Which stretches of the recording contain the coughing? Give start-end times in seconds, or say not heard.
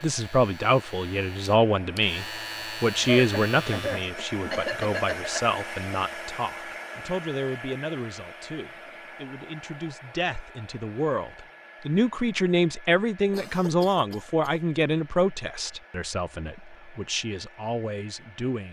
3.0-5.4, 13.3-14.6.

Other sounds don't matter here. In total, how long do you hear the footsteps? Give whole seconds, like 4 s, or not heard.
not heard.